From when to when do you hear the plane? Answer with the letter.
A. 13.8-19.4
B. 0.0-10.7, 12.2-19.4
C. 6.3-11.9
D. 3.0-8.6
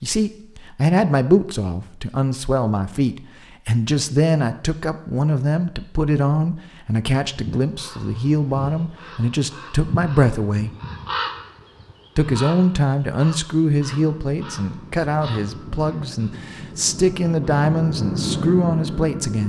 A.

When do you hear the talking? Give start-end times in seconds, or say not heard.
0.0-10.7, 12.2-19.4.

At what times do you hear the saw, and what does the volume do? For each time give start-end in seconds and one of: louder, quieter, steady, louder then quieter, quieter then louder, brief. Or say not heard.
not heard.